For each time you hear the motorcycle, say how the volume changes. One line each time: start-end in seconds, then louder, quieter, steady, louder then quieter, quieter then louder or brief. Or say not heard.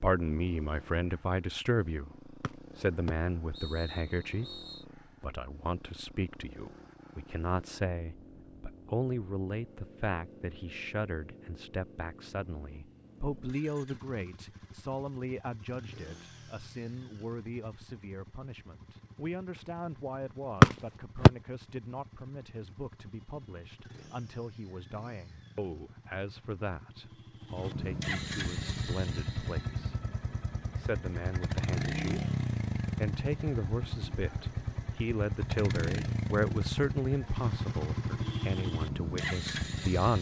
0.0-40.1 louder.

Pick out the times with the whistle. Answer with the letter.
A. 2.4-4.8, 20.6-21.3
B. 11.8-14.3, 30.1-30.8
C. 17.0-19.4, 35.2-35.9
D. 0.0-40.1
A.